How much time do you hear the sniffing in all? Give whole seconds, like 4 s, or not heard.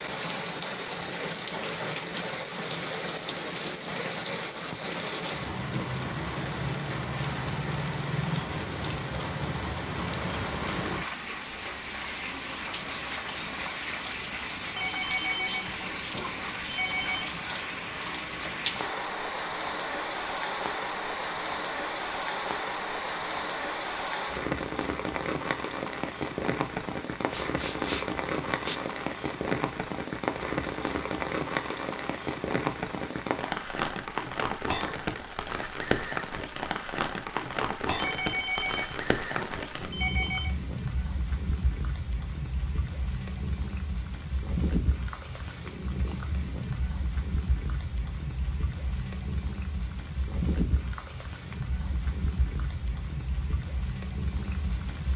2 s.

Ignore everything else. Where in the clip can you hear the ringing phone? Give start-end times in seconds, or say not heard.
14.8-17.3, 38.0-40.5.